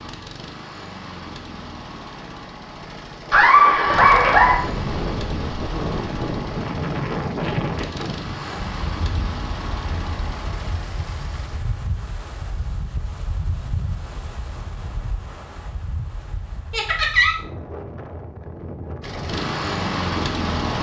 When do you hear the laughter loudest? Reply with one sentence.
The volume of the laughter peaks at 4 seconds.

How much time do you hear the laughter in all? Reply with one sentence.
You can hear the laughter for 2 seconds altogether.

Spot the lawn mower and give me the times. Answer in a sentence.
The lawn mower can be heard from 0.0 to 11.6 s and from 19.0 to 20.7 s.